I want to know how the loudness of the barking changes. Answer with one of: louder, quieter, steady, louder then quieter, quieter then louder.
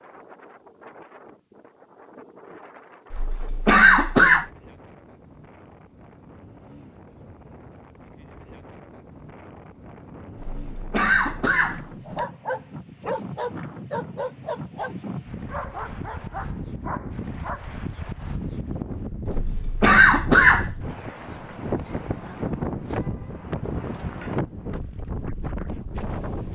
quieter.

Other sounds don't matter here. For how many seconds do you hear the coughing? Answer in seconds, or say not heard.
5 s.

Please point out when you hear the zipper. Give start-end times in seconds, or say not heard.
not heard.